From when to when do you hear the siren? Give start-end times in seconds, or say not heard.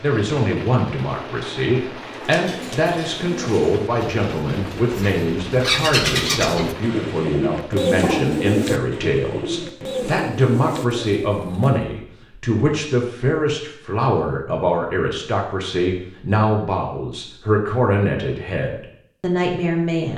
not heard.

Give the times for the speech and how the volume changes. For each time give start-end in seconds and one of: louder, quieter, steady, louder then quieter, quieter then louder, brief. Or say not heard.
0.0-20.1 steady.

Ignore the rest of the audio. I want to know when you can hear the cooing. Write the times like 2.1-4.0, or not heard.
2.0-11.9.